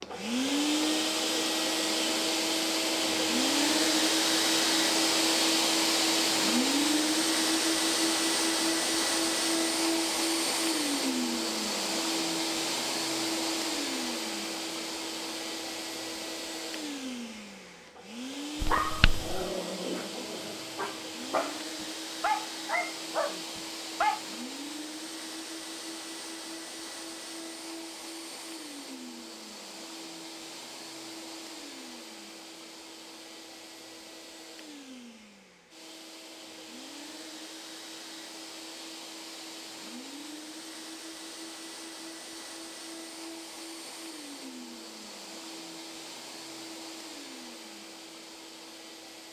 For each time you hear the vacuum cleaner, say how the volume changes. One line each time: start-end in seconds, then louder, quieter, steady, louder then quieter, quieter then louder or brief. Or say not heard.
0.0-49.2 quieter.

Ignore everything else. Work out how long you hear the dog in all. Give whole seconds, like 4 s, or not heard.
6 s.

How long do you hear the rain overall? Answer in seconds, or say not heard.
not heard.